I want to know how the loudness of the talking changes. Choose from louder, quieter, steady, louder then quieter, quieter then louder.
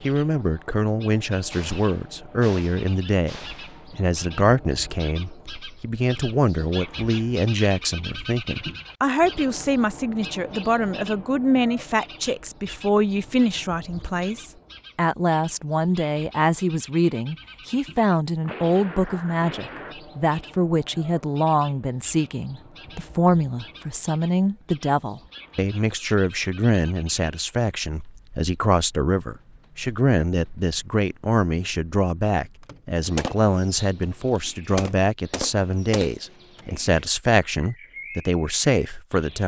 steady.